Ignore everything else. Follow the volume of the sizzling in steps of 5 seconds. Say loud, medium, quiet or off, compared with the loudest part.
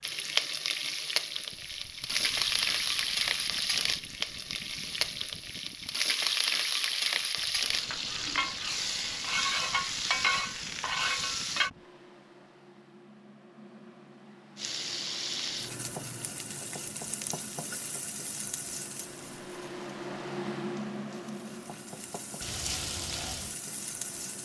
loud, loud, loud, medium, medium.